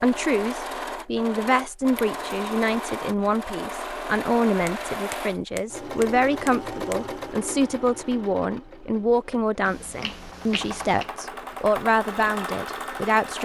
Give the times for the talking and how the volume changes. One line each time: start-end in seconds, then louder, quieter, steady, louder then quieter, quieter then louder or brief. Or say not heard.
0.0-13.4 steady.